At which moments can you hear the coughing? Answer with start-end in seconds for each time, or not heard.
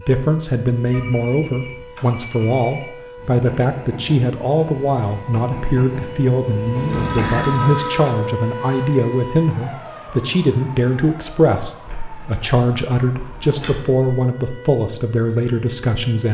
not heard.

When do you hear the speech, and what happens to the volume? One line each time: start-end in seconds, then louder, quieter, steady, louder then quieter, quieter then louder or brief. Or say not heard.
0.0-16.2 steady.